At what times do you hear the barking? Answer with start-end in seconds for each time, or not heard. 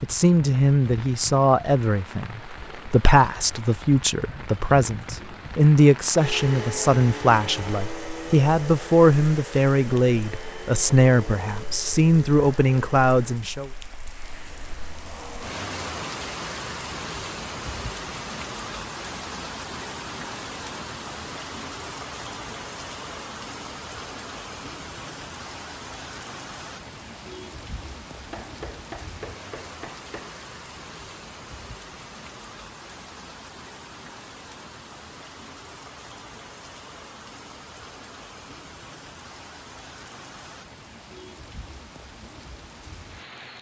not heard.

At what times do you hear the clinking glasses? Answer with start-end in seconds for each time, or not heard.
not heard.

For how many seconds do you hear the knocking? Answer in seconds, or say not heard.
2 s.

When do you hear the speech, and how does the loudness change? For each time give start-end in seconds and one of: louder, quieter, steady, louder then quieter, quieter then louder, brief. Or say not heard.
0.0-13.7 steady.